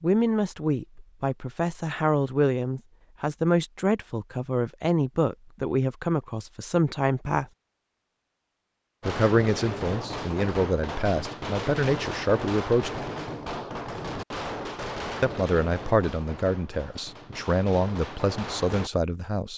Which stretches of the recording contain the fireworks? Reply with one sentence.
The fireworks can be heard from 9.0 to 18.9 s.